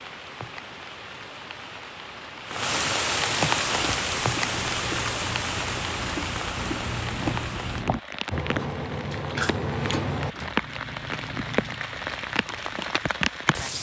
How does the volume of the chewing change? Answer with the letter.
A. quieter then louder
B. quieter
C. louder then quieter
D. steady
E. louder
C.